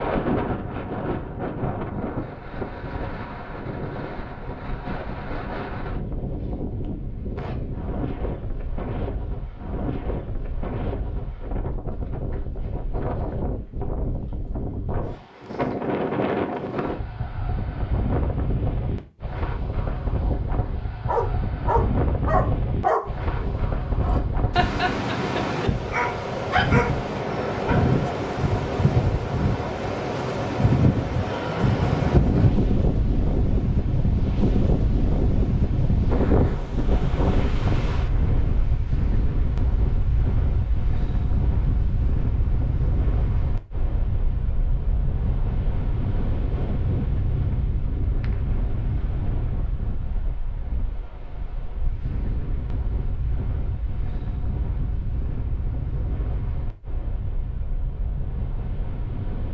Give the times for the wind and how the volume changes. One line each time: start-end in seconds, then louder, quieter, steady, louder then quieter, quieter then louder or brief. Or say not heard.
0.0-59.4 louder then quieter.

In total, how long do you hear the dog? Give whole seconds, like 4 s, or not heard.
7 s.